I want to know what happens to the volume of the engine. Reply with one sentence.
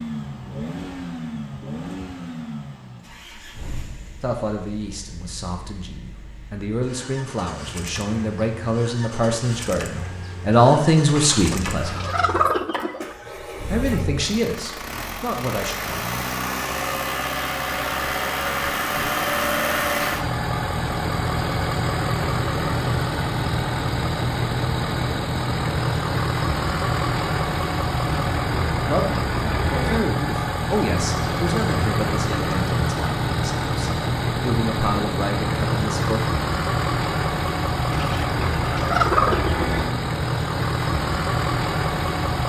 The volume of the engine goes up.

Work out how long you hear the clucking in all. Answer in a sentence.
You can hear the clucking for 4 seconds altogether.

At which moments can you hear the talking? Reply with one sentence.
You can hear the talking from 4.2 to 12.1 s, from 13.7 to 16.1 s and from 28.9 to 36.2 s.